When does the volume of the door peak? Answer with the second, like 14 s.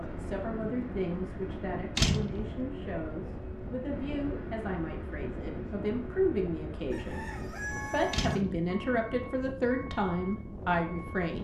2 s.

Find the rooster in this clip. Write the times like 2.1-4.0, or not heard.
6.9-8.4.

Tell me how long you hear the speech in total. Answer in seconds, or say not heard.
11 s.